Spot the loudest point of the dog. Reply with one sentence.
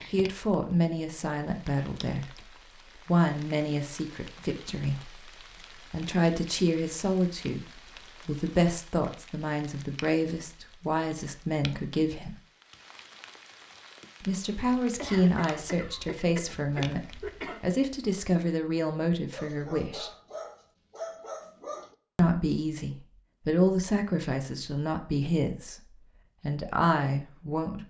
The volume of the dog peaks at 21 seconds.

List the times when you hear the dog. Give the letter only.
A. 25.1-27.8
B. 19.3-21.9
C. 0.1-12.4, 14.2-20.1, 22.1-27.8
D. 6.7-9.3
B.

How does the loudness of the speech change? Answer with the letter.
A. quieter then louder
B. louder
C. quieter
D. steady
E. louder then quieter
D.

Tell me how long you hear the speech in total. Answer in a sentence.
The speech can be heard for 24 seconds in total.